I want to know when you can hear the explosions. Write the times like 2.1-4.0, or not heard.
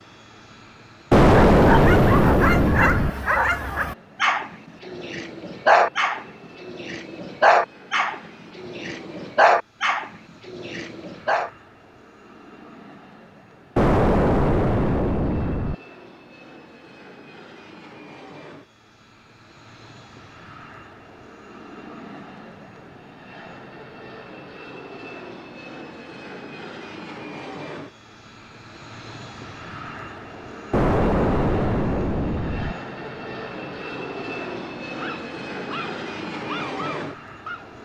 1.1-3.1, 13.8-15.8, 30.7-32.8.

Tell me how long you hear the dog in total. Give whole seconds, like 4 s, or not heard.
13 s.